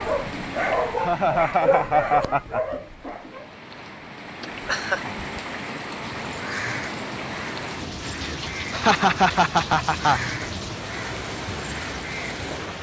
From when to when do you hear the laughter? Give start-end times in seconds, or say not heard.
1.0-2.6, 4.4-5.0, 8.7-10.3.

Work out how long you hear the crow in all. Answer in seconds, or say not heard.
7 s.